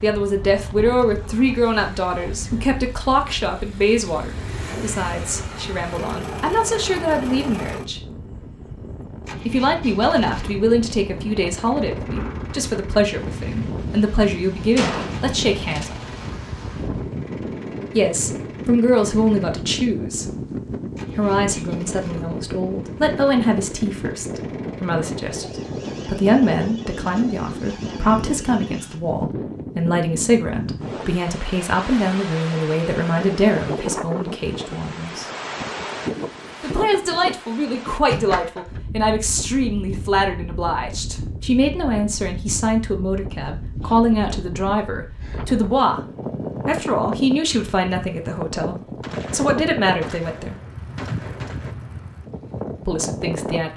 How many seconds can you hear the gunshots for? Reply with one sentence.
You can hear the gunshots for 4 seconds altogether.